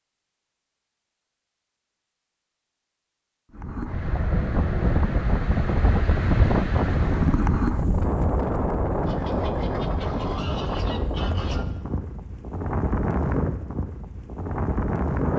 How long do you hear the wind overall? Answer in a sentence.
The wind can be heard for 12 seconds in total.